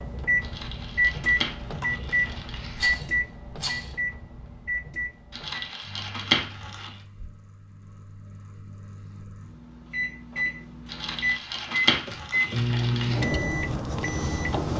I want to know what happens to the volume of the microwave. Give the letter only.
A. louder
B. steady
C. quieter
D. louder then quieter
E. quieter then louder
E.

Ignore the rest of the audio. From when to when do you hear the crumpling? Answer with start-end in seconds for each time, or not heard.
0.4-3.0, 5.3-7.0, 10.8-13.3.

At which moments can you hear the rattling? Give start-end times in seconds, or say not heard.
2.8-4.0, 11.8-12.2.